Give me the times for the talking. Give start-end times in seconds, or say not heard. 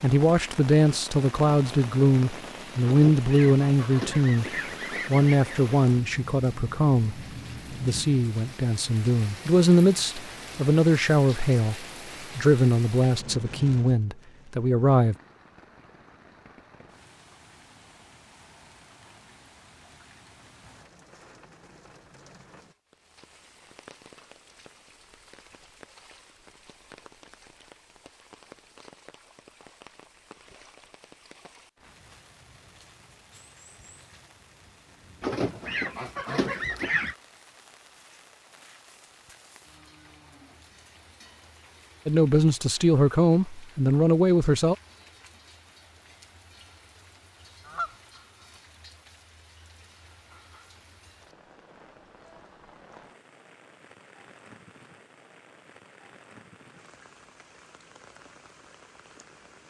0.0-4.5, 5.0-7.2, 7.8-15.2, 42.0-44.8.